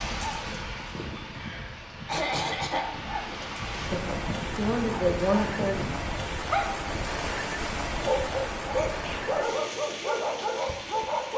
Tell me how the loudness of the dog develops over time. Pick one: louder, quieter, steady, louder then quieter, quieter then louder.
louder.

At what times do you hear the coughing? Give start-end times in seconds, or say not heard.
2.0-2.9, 9.0-9.7.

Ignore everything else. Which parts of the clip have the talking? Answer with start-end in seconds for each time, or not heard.
3.7-5.8.